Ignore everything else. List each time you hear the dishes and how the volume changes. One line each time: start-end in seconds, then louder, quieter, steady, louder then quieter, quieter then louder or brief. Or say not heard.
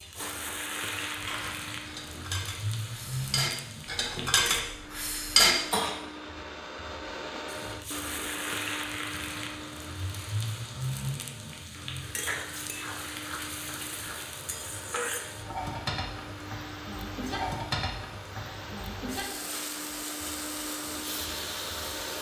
0.1-6.0 louder.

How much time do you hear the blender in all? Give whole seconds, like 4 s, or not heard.
22 s.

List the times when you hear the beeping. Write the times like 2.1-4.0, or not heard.
not heard.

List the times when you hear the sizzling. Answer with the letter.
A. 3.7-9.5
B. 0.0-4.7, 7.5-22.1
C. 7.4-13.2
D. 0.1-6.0
B.